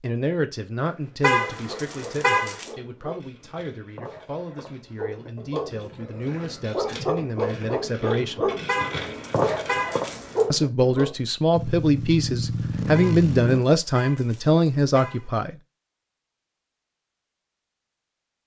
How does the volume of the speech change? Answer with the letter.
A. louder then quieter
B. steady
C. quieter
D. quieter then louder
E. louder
D.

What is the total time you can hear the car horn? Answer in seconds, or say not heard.
6 s.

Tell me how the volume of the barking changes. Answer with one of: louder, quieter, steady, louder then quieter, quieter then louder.
louder.